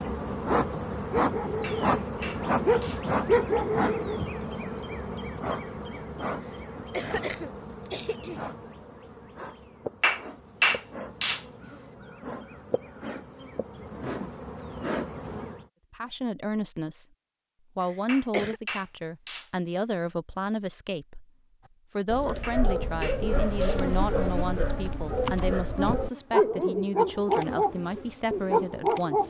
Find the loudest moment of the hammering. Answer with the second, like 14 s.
11 s.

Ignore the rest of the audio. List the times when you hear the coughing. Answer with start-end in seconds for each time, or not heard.
6.5-8.4, 17.8-18.6.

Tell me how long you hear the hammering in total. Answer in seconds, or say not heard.
6 s.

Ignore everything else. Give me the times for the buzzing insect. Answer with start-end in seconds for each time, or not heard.
0.0-15.7, 23.2-29.2.